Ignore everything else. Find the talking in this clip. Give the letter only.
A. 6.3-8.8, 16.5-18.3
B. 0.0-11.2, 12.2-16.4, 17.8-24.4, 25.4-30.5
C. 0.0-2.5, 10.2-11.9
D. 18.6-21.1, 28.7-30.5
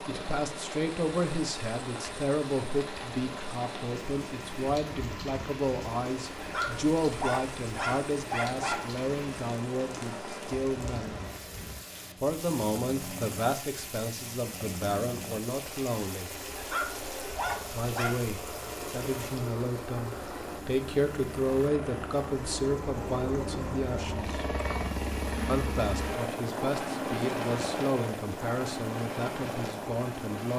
B.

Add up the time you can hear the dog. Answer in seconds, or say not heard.
4 s.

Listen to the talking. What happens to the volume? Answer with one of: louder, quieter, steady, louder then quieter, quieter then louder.
steady.